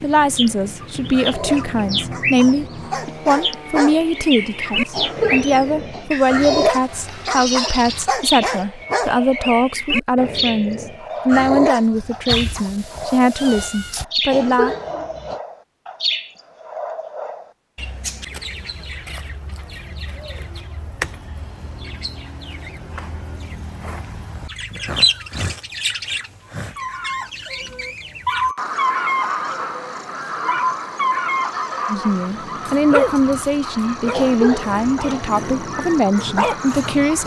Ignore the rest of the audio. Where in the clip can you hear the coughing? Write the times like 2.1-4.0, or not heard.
4.9-6.1, 14.3-15.4, 34.1-35.3.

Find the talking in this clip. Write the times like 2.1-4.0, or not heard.
0.0-2.6, 3.2-14.8, 31.9-37.2.